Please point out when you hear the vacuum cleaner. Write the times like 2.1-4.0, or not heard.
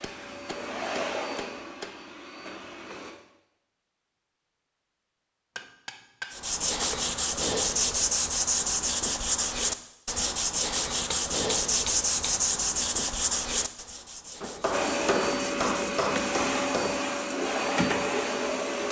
0.0-3.1, 14.7-18.8.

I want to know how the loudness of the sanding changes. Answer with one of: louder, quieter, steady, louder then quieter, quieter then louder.
quieter.